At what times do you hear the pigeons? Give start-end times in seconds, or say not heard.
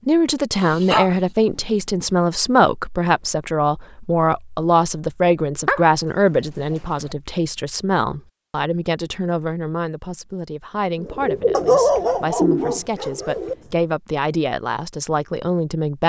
10.9-13.8.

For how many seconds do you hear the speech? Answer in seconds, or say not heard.
16 s.